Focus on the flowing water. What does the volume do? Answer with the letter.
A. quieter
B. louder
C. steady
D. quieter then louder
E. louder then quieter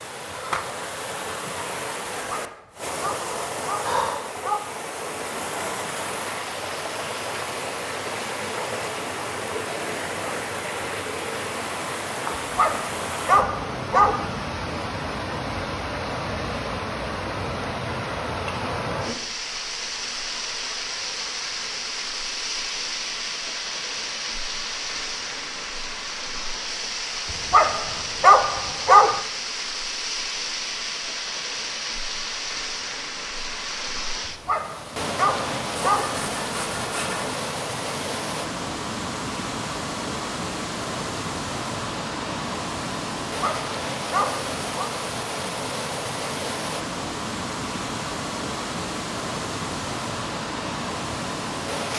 C.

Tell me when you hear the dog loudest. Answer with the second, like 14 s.
29 s.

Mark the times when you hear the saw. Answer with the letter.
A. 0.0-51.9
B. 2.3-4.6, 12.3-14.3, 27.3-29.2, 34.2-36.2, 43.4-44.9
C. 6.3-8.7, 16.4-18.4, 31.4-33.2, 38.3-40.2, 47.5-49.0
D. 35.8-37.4
D.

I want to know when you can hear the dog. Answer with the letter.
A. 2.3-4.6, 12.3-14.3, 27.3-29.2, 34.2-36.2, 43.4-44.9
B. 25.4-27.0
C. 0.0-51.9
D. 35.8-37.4
A.